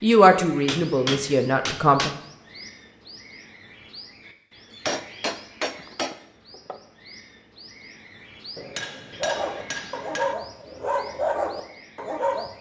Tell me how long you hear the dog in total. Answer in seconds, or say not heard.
3 s.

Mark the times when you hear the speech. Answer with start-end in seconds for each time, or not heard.
0.0-2.1.